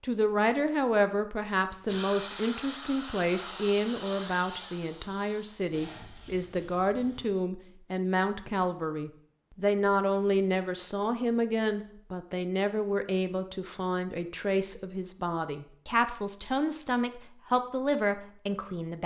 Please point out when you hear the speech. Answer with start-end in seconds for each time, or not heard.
0.0-19.0.